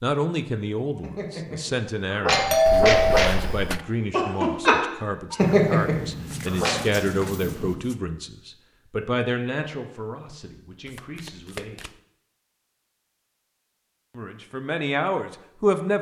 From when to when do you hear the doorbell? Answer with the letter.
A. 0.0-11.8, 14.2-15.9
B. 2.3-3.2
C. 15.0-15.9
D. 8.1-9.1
B.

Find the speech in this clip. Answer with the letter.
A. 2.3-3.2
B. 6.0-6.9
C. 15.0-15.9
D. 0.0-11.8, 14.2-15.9
D.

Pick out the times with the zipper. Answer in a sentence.
The zipper can't be heard in this clip.